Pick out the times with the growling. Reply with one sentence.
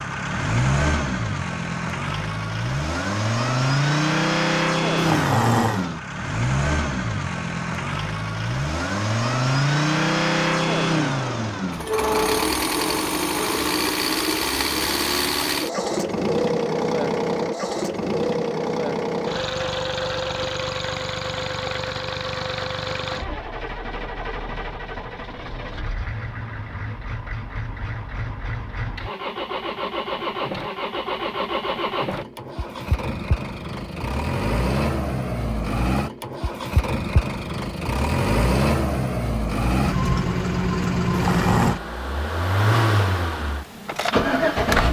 The growling can be heard from 5.0 to 5.8 s and from 41.1 to 41.8 s.